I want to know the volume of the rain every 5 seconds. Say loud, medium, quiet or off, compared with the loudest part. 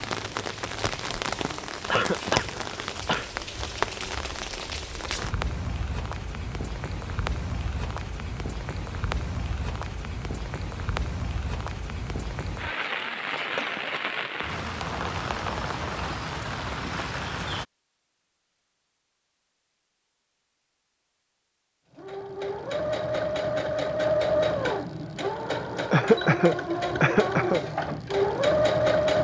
loud, loud, loud, loud, off, off.